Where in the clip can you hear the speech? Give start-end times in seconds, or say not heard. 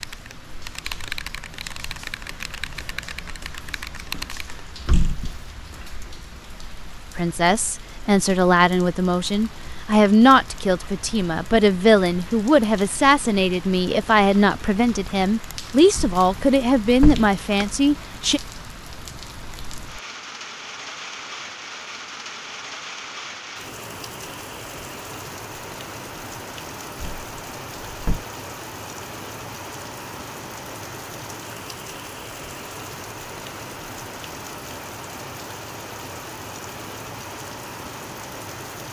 7.2-18.4.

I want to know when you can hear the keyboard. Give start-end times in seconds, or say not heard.
0.0-4.6.